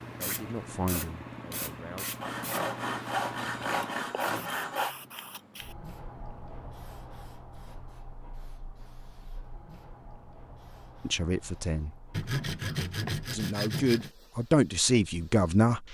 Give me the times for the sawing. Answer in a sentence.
You can hear the sawing from 2.2 to 5.0 s and from 12.1 to 14.1 s.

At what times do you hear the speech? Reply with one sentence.
You can hear the speech from 0.1 to 2.2 s, from 11.1 to 11.9 s and from 13.3 to 15.9 s.